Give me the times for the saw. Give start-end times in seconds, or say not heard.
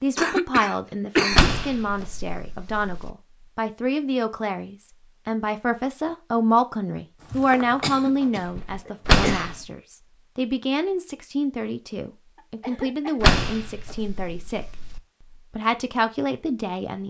not heard.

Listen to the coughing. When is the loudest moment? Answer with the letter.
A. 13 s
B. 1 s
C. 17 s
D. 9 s
B.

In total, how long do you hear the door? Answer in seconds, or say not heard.
4 s.